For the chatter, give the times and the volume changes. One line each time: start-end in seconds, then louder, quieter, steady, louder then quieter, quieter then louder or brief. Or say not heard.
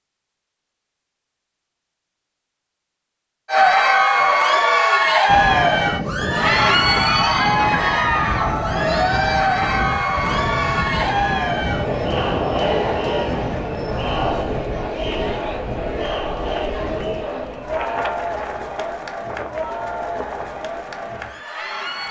3.5-22.0 quieter.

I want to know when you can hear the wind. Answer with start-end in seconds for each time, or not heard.
5.2-22.0.